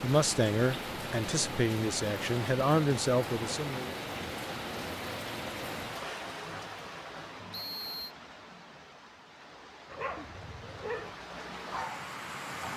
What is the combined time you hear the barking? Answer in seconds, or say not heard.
3 s.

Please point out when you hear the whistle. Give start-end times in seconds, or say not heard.
7.5-8.2.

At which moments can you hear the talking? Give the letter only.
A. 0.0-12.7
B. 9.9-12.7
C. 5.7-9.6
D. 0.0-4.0
D.